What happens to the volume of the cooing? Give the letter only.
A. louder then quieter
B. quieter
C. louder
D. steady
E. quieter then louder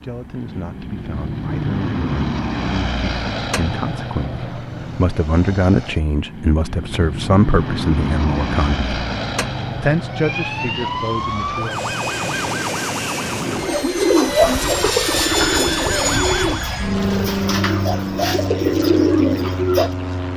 E.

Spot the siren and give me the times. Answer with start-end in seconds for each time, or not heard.
10.1-16.8.